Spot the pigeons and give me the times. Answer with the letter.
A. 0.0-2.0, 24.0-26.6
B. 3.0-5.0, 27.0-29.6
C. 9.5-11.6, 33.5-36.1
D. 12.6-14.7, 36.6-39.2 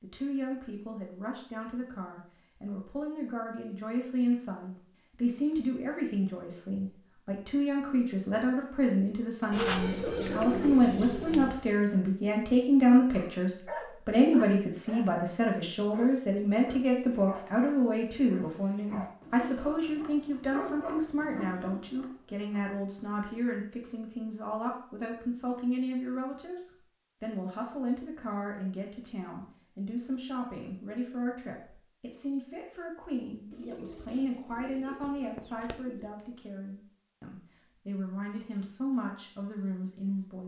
C.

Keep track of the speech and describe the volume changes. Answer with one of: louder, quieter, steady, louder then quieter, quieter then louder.
louder then quieter.